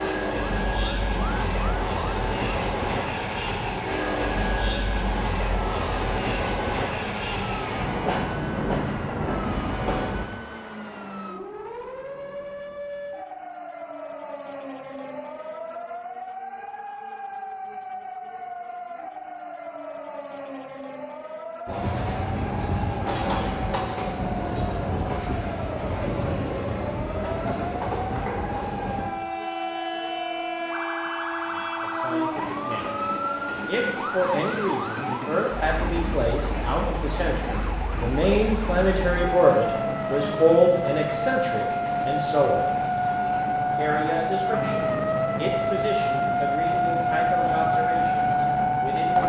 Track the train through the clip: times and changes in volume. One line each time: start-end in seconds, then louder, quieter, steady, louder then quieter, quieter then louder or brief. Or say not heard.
0.0-10.2 steady
21.6-49.2 quieter.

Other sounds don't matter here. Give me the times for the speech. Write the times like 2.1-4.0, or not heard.
31.4-33.0, 33.6-42.7, 43.8-49.2.